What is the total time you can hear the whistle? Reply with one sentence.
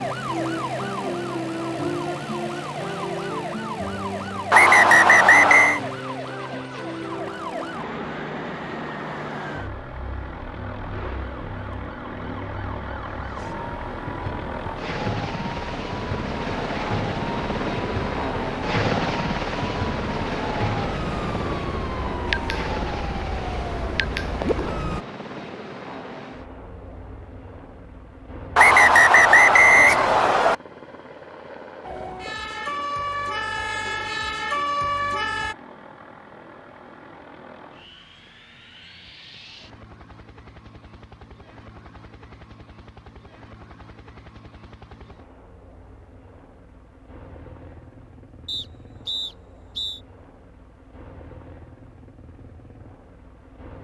The whistle can be heard for 5 seconds in total.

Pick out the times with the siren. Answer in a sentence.
The siren can be heard from 0.0 to 25.1 s and from 31.8 to 35.5 s.